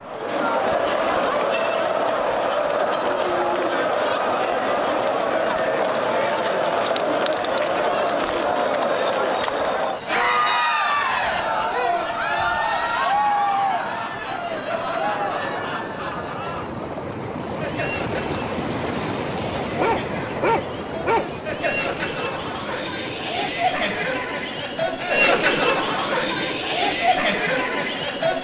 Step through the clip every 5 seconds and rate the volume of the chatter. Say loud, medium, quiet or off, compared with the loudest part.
loud, loud, loud, medium, medium, loud.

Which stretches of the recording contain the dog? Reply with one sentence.
You can hear the dog from 19.8 to 21.2 s.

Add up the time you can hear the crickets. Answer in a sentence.
You can't hear the crickets here.